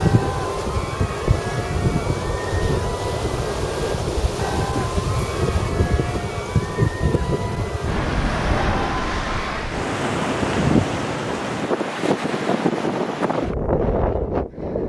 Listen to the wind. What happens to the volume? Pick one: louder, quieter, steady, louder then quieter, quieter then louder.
steady.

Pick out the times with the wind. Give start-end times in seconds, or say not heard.
0.0-14.8.